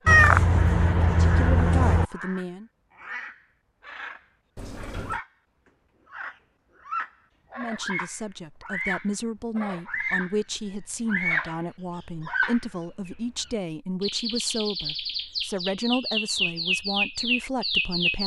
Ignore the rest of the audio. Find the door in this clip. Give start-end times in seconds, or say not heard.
4.5-5.2.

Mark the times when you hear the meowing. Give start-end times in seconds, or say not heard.
0.1-2.0.